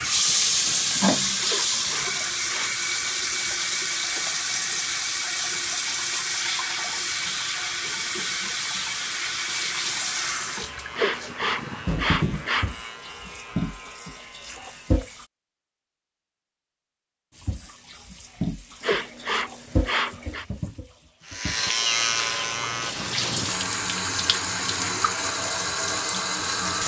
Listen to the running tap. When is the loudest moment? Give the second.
1 s.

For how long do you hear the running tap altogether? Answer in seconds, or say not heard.
25 s.